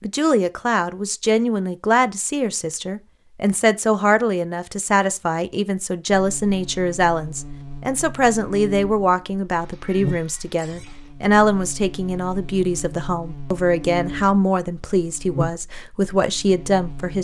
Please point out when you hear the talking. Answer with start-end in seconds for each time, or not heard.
0.0-17.2.